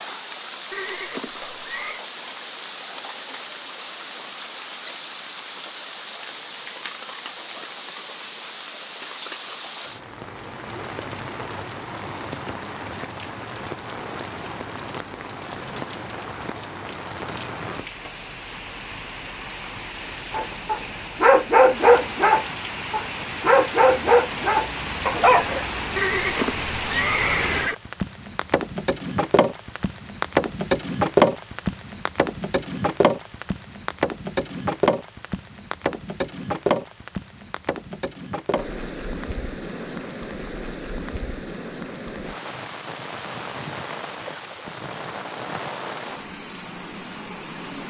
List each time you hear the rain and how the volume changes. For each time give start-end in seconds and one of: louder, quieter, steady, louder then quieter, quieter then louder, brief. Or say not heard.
0.0-47.8 louder then quieter.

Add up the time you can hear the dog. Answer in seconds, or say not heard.
5 s.